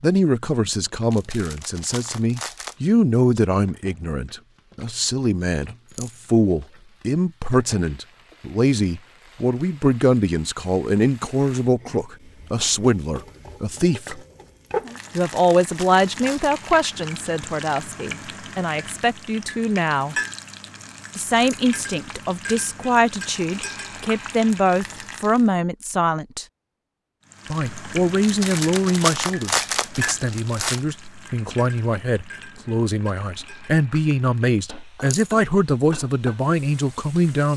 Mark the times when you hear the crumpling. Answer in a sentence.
You can hear the crumpling from 1.1 to 2.9 s, from 14.9 to 16.6 s and from 28.2 to 30.8 s.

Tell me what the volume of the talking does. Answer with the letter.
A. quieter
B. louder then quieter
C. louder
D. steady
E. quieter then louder
D.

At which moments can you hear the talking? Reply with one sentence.
You can hear the talking from 0.0 to 14.2 s, from 15.2 to 20.1 s, from 21.1 to 26.4 s and from 27.5 to 37.5 s.